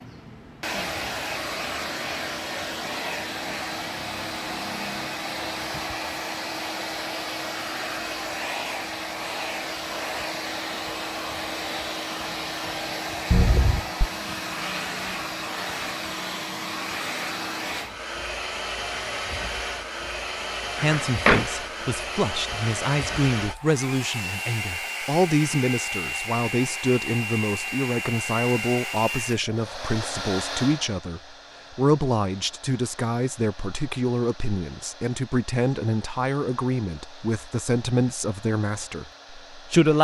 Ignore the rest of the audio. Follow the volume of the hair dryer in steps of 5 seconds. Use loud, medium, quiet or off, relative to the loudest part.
loud, loud, loud, loud, loud, loud, medium, quiet.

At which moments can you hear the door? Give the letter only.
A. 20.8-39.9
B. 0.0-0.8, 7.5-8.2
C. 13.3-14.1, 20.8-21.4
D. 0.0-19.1
C.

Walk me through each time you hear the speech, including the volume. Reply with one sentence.
The speech can be heard from 20.8 to 39.9 s, at a steady volume.